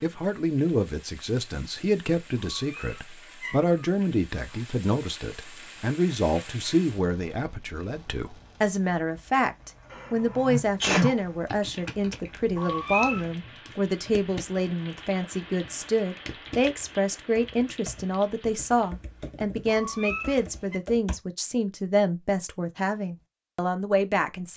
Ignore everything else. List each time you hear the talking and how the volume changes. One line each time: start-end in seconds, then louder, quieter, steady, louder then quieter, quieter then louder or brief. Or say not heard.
0.0-24.5 steady.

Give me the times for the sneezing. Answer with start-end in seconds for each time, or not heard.
9.9-11.2.